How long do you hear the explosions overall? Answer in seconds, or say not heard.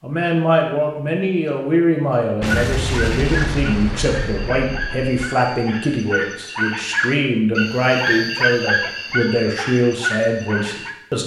3 s.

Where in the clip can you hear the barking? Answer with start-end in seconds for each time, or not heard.
2.4-10.9.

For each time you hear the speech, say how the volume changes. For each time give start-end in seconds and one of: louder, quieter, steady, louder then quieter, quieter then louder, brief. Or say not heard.
0.0-11.2 steady.